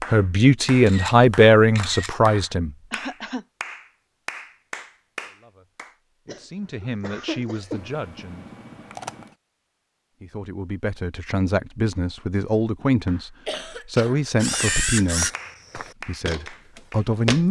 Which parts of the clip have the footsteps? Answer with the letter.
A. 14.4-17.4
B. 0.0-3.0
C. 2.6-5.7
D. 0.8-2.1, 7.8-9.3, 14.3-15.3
A.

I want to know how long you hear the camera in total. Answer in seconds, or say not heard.
4 s.